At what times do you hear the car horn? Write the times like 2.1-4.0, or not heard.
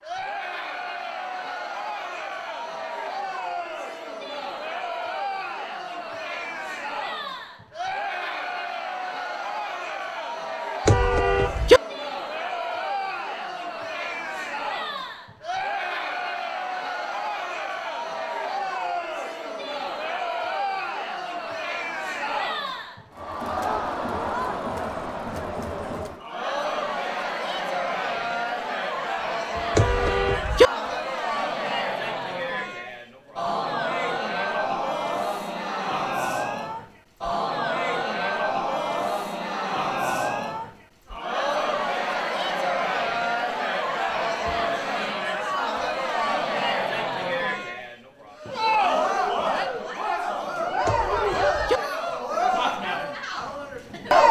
10.8-11.8, 29.8-30.7, 50.9-51.8.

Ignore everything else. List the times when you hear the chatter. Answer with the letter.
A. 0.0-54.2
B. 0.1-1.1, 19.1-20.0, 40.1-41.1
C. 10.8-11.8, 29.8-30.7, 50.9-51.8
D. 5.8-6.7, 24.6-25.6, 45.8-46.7
A.